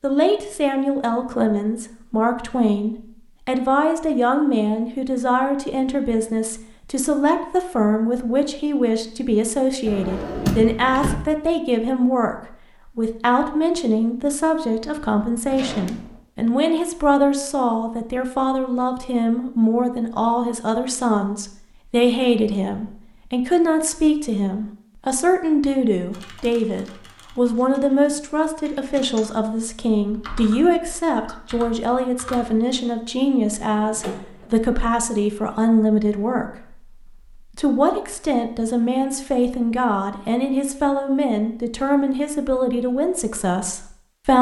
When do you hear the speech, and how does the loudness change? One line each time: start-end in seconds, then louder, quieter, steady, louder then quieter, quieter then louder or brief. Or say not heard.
0.0-44.3 steady.